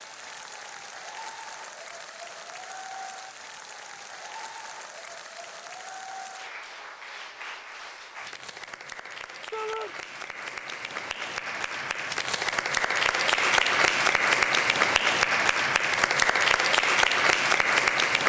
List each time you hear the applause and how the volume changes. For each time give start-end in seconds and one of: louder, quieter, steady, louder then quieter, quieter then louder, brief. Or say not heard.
0.0-18.2 louder.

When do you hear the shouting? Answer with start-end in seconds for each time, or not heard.
9.5-9.9.